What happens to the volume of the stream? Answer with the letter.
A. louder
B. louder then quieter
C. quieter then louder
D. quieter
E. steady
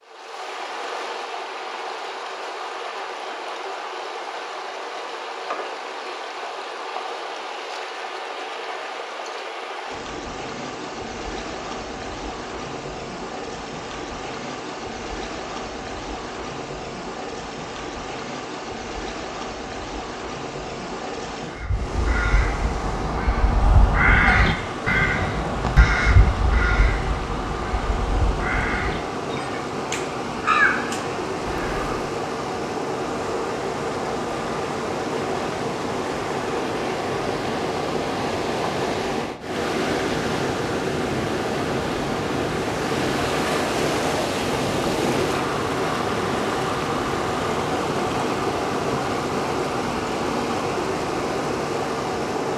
A.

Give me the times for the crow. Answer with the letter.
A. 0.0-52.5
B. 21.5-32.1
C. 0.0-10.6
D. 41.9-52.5
B.